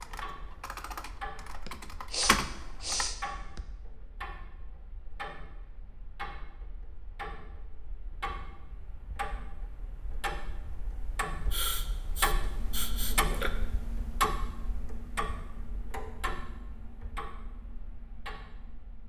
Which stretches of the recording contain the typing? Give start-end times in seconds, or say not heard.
0.0-3.1.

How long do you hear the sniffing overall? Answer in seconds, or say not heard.
4 s.